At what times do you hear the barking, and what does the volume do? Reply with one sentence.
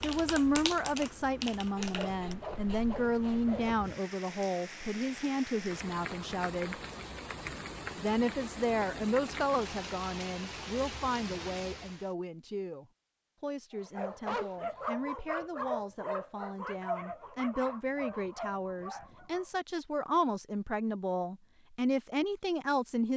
The barking can be heard from 13.8 to 19.5 s, getting quieter.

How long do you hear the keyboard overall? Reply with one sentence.
You can hear the keyboard for 2 seconds altogether.